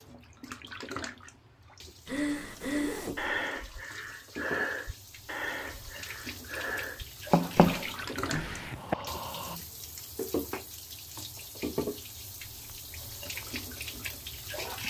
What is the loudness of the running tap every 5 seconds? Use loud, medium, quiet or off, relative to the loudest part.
medium, loud, loud.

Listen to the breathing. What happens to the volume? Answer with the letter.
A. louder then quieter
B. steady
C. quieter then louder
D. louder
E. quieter
E.